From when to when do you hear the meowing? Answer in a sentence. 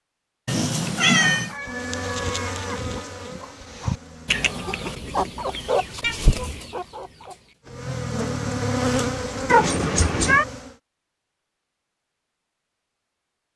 The meowing can be heard from 0.5 to 1.6 s, from 6.0 to 6.6 s and from 9.4 to 10.4 s.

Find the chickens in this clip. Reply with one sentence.
The chickens can be heard from 1.0 to 7.5 s.